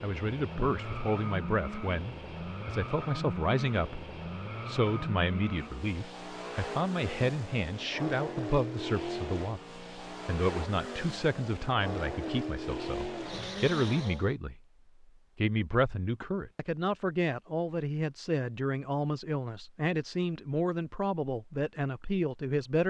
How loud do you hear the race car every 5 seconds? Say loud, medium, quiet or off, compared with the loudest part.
loud, loud, loud, off, off.